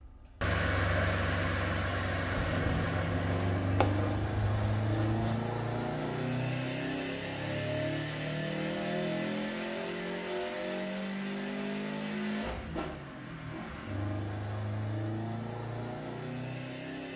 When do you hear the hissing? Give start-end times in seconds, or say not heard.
2.3-5.4.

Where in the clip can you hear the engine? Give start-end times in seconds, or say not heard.
0.0-17.1.